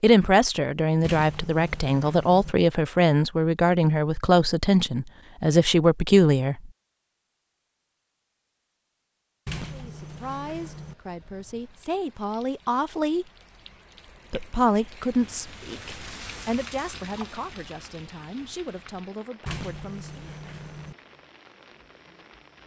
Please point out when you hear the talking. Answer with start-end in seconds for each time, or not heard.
0.0-6.7, 9.7-13.2, 14.3-20.3.